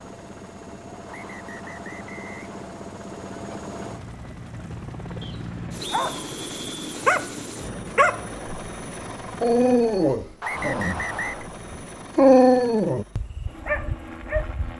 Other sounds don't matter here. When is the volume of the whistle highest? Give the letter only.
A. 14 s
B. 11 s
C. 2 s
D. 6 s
B.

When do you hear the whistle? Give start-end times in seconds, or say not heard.
1.1-2.6, 5.2-7.0, 10.4-11.4.